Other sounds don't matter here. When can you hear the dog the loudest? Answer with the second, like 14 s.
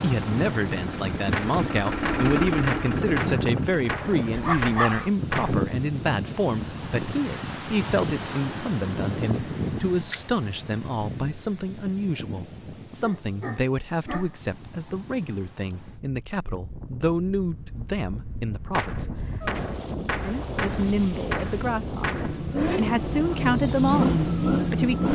5 s.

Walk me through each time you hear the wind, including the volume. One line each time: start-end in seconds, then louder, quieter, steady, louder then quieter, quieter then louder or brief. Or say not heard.
0.0-25.0 quieter then louder.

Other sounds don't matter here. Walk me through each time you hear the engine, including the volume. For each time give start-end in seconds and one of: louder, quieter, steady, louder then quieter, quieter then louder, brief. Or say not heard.
0.0-4.7 louder then quieter
22.1-25.0 brief.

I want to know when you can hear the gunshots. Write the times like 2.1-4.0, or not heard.
1.3-5.7, 18.7-22.4.